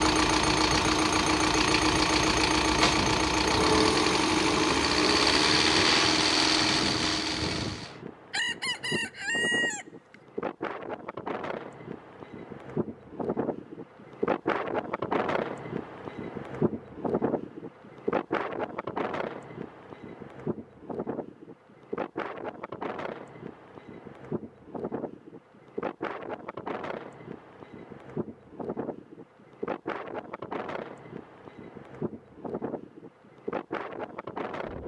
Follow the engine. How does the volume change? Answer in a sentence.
The loudness of the engine stays about the same.